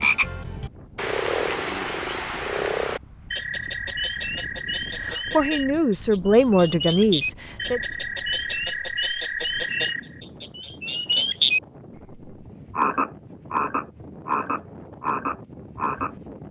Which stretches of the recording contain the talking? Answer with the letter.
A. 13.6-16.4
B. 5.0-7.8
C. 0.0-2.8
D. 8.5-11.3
B.